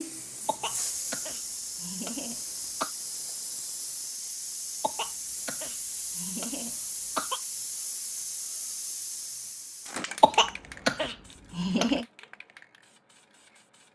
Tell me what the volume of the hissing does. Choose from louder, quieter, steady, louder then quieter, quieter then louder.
quieter.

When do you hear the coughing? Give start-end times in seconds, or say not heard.
0.5-2.9, 4.8-7.4, 10.2-12.1.